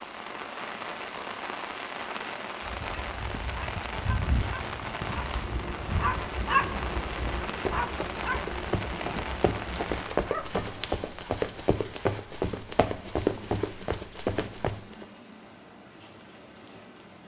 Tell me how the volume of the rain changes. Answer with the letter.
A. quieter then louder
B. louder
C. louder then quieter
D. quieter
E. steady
D.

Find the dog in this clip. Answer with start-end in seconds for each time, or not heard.
2.6-10.7.